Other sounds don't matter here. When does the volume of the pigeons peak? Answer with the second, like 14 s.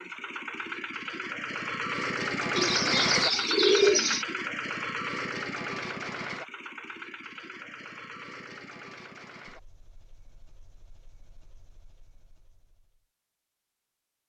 4 s.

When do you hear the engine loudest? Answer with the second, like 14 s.
3 s.